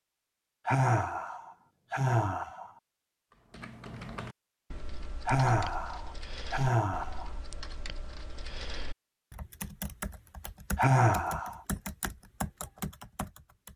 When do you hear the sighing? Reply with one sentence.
You can hear the sighing from 0.7 to 2.7 s, from 5.2 to 7.3 s and from 10.8 to 11.6 s.